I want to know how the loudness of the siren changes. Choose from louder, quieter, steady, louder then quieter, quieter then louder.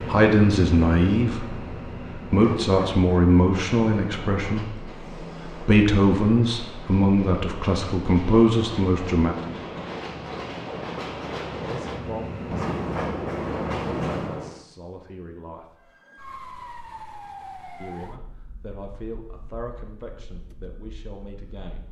quieter.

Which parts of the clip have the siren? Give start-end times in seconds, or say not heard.
15.8-21.8.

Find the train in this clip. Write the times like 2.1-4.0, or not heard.
0.0-14.6.